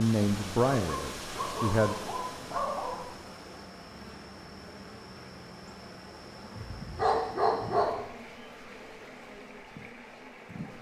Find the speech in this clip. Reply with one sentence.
The speech can be heard from 0.0 to 1.9 s.